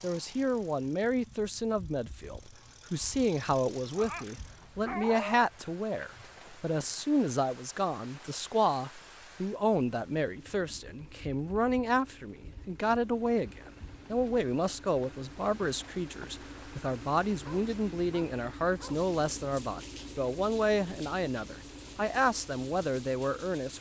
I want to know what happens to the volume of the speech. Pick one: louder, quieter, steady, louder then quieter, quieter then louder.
steady.